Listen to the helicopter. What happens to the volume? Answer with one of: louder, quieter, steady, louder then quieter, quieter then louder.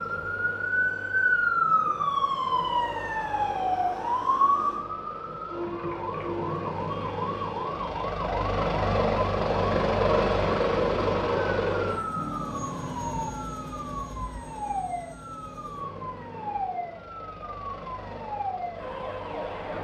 louder then quieter.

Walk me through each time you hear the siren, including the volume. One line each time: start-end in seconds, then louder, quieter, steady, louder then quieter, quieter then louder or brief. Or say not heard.
0.0-19.7 quieter.